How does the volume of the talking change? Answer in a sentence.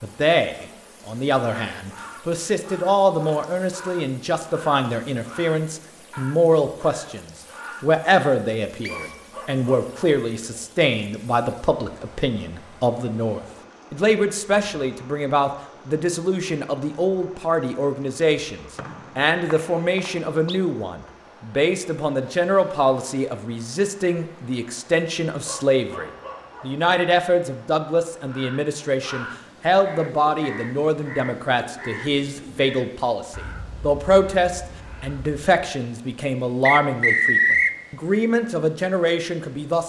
The loudness of the talking stays about the same.